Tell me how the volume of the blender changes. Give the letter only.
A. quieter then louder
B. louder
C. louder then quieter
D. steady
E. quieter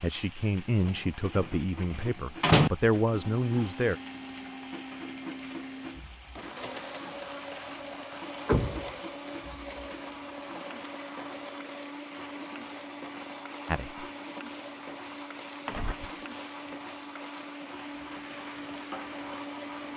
D.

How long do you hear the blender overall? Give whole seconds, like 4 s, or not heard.
17 s.